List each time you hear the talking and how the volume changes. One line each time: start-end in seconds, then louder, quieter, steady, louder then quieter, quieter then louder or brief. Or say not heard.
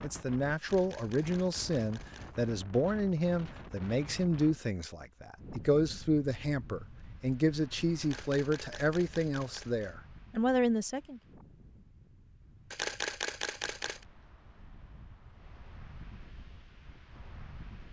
0.0-11.2 steady.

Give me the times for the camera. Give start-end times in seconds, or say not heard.
0.6-2.5, 8.0-9.9, 12.7-14.1.